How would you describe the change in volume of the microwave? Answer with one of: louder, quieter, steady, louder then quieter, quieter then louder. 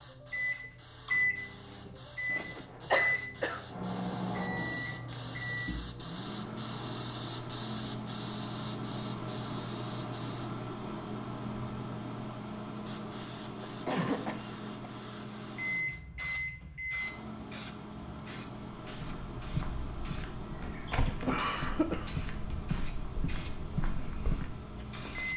quieter.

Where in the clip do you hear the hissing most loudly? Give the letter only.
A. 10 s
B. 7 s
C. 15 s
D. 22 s
B.